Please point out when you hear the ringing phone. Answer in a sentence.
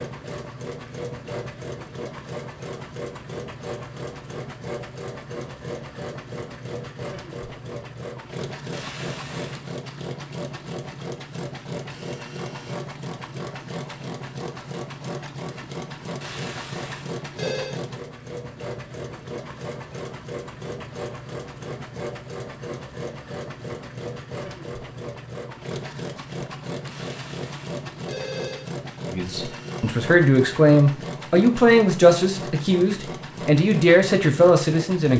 The ringing phone can be heard from 8.7 to 9.7 s, from 16.2 to 17.8 s and from 26.9 to 28.6 s.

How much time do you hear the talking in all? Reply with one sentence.
The talking can be heard for 6 seconds in total.